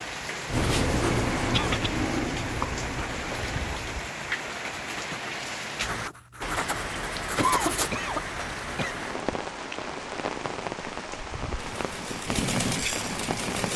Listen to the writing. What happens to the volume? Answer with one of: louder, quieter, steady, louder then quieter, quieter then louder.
quieter then louder.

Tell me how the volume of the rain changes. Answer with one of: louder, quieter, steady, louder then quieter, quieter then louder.
steady.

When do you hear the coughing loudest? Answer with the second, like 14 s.
8 s.